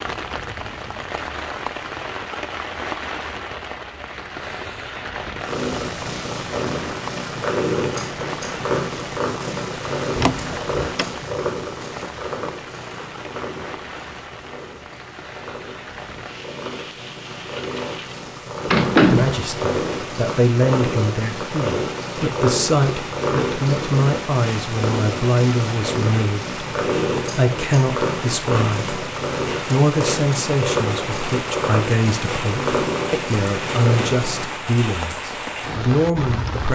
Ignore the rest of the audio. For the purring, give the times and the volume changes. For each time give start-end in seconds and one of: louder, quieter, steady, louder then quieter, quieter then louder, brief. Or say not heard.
5.4-34.5 quieter then louder.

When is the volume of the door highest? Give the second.
19 s.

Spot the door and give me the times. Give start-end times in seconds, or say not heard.
10.2-11.1, 18.7-19.4.